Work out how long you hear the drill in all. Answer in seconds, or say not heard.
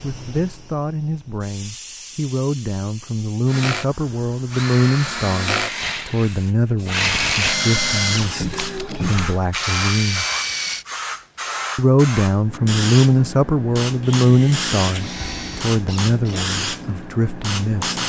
10 s.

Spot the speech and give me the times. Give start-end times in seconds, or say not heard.
0.0-10.2, 11.8-18.0.